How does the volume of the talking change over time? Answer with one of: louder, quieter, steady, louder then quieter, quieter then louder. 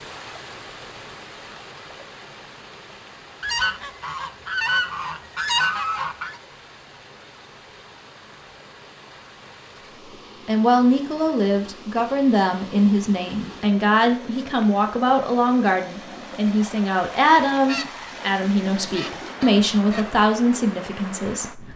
steady.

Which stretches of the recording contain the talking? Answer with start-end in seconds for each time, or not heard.
10.4-21.7.